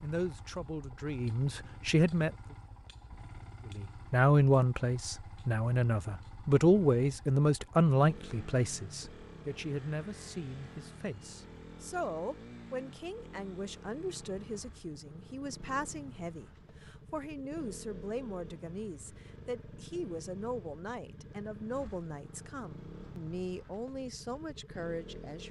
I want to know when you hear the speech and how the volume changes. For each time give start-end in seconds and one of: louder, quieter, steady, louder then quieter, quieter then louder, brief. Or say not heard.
0.0-2.3 brief
3.7-25.4 quieter.